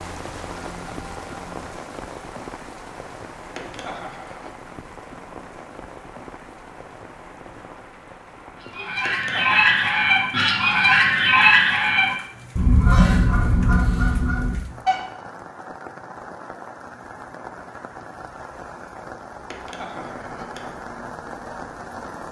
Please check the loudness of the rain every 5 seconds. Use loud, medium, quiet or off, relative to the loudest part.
loud, medium, medium, loud, loud.